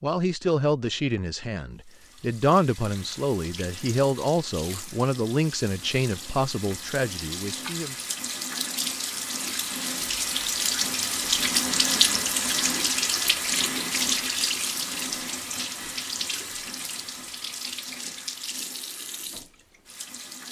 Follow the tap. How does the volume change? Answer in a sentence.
The loudness of the tap goes up, then down.